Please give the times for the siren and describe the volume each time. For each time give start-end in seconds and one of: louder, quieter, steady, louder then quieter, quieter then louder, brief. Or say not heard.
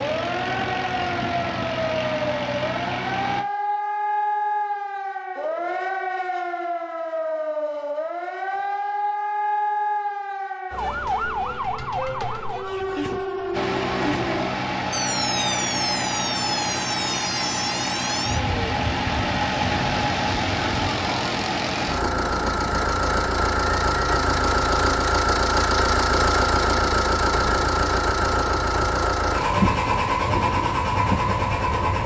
0.0-32.0 quieter.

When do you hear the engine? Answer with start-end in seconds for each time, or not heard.
0.0-3.5, 13.5-32.0.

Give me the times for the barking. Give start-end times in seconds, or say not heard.
not heard.